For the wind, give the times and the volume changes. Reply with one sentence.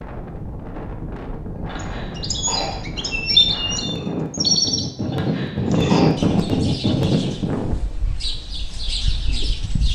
The wind can be heard from 0.0 to 7.8 s, getting louder.